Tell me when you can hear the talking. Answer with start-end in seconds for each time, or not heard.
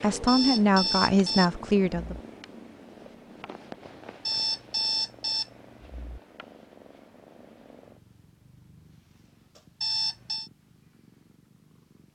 0.0-2.1.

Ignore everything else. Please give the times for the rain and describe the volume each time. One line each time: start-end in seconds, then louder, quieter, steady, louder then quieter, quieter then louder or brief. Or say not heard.
not heard.